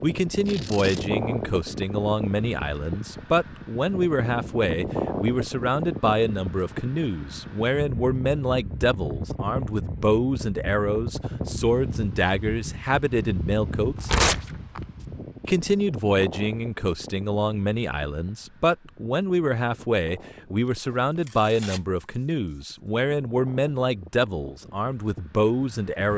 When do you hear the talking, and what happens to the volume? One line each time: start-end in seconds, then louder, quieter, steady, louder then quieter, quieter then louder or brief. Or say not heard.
0.0-14.2 steady
15.4-26.1 steady.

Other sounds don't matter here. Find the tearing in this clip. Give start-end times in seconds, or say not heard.
0.5-1.1, 13.9-14.8, 20.6-22.6.